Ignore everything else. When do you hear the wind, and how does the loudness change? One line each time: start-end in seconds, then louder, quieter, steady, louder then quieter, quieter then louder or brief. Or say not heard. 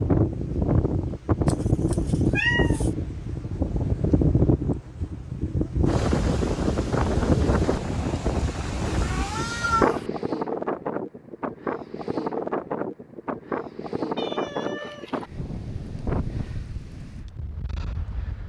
0.0-18.4 quieter.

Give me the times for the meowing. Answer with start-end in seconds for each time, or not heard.
1.4-2.9, 8.9-10.1, 14.2-15.2.